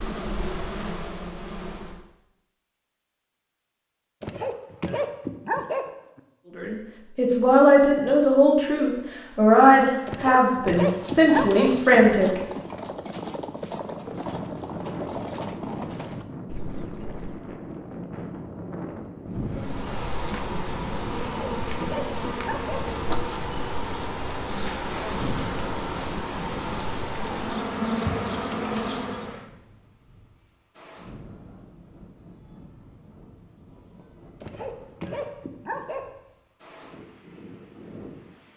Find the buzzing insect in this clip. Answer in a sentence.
The buzzing insect can be heard from 0.0 to 2.0 s and from 19.4 to 29.4 s.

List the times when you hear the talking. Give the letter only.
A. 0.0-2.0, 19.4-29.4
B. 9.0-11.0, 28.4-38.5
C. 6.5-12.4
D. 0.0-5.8
C.